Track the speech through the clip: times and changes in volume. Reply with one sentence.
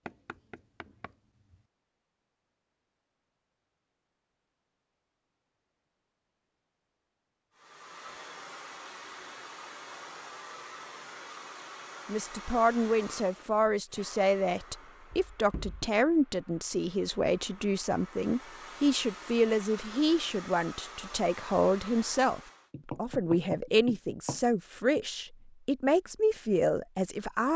The speech can be heard from 12.1 to 27.5 s, at a steady volume.